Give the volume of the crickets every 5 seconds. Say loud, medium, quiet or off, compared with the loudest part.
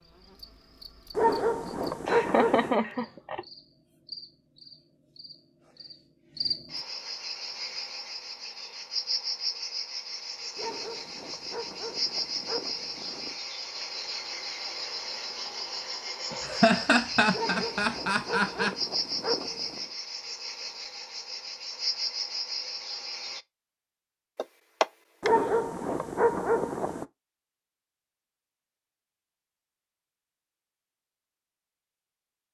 quiet, loud, loud, loud, loud, off, off.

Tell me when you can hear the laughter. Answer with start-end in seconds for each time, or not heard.
2.0-3.5, 16.4-18.8, 24.4-25.3.